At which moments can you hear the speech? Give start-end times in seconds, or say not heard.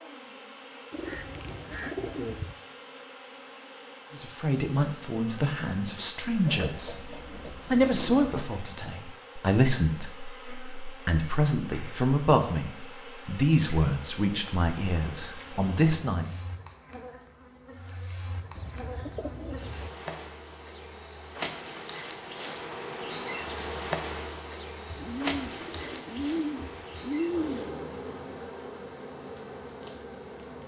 4.2-16.4.